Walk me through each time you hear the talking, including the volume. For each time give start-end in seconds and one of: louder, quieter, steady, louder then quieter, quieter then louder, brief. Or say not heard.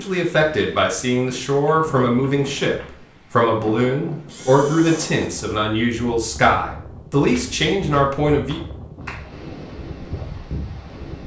0.0-8.6 steady.